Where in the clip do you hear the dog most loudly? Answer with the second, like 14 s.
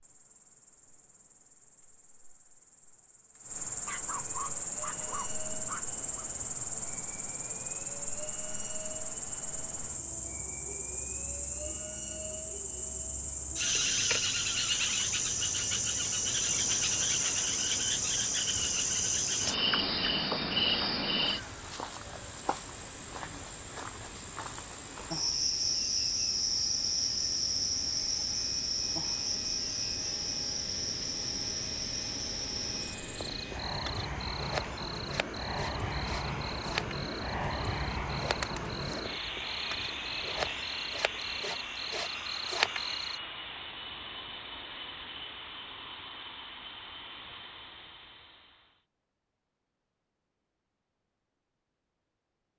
4 s.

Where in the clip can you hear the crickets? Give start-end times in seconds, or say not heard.
0.0-43.2.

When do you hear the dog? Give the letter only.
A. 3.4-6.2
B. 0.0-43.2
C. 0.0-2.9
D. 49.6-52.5
A.